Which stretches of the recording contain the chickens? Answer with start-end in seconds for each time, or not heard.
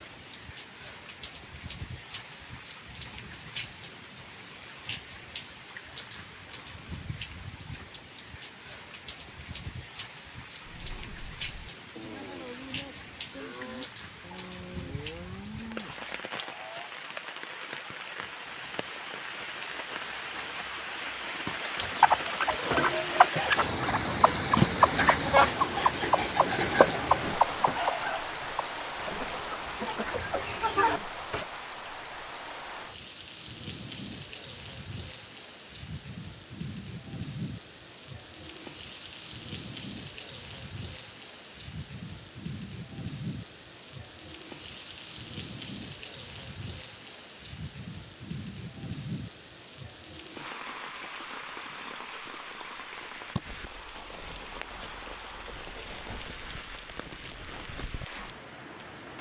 21.8-31.4.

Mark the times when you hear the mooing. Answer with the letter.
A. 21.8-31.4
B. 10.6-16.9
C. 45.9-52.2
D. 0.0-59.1
B.